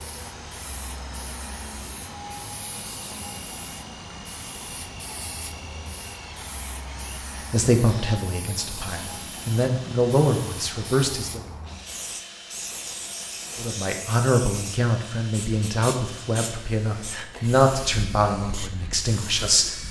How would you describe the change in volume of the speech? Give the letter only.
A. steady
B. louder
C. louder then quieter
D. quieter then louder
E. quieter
A.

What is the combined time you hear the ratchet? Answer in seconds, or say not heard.
not heard.